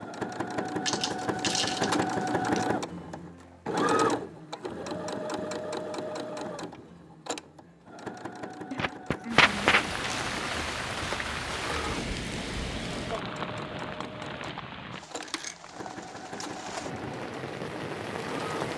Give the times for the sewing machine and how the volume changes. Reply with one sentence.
You can hear the sewing machine from 0.0 to 18.7 s, getting quieter.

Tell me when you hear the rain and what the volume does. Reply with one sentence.
The rain can be heard from 9.3 to 18.7 s, getting quieter then louder.